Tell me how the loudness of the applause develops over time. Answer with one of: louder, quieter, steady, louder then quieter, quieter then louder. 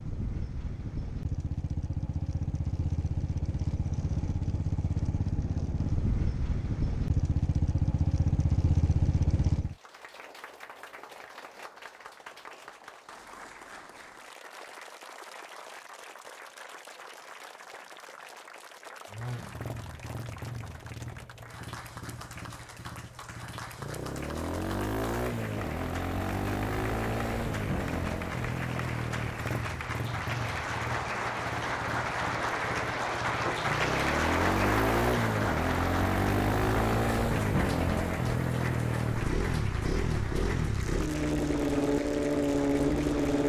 louder then quieter.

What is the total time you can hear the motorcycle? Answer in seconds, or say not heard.
34 s.